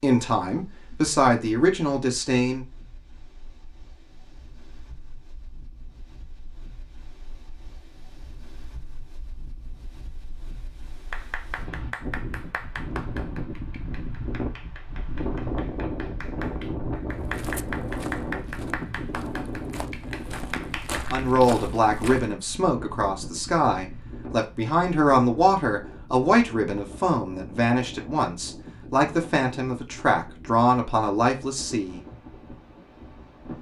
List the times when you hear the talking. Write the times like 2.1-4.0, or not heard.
0.0-2.6, 21.1-32.0.